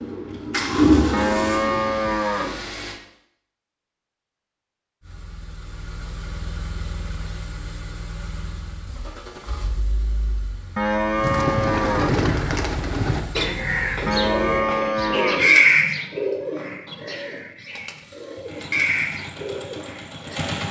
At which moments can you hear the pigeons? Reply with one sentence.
You can hear the pigeons from 0.0 to 2.1 s and from 11.2 to 20.6 s.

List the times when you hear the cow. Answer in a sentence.
You can hear the cow from 1.1 to 2.6 s, from 10.8 to 12.2 s and from 14.1 to 15.6 s.